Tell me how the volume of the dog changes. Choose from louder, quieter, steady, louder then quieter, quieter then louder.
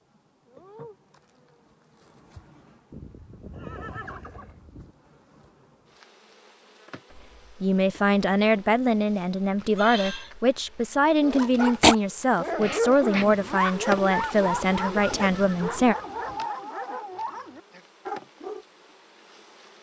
quieter.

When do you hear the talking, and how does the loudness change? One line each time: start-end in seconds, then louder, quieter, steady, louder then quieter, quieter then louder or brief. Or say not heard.
7.2-15.9 steady.